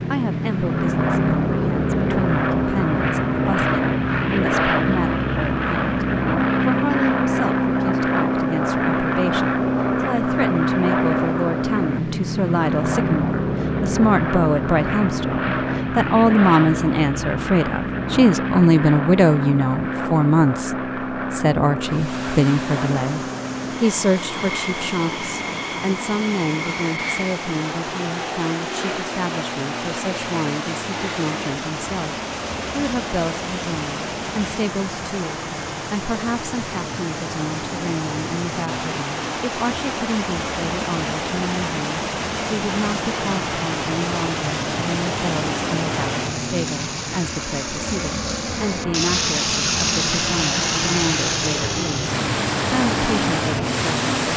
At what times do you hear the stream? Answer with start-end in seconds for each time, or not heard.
21.9-54.3.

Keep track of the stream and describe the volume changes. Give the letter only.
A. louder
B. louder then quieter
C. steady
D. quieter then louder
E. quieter
A.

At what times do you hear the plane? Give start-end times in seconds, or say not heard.
0.0-54.3.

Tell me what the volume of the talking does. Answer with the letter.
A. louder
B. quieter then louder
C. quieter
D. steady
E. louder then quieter
E.